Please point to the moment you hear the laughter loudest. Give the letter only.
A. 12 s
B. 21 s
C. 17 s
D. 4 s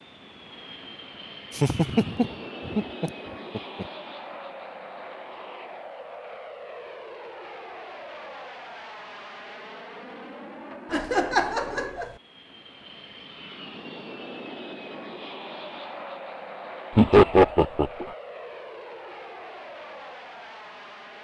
C.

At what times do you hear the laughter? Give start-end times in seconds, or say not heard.
1.6-3.9, 10.9-12.1, 16.9-18.1.